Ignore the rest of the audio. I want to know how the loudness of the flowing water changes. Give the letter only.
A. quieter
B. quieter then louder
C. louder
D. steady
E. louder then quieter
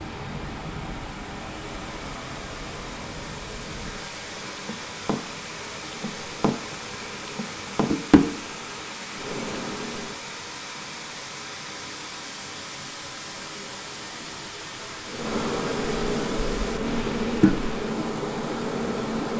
D.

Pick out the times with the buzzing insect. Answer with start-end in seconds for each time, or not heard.
0.0-10.2, 15.1-19.3.